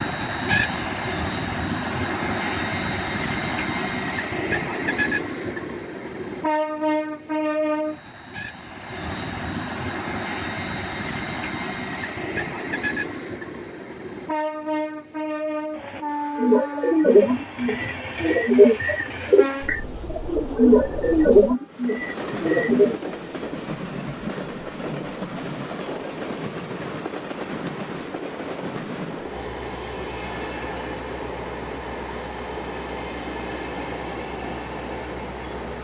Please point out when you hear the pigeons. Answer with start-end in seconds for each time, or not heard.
16.4-22.9.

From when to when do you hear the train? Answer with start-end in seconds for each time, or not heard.
0.0-35.7.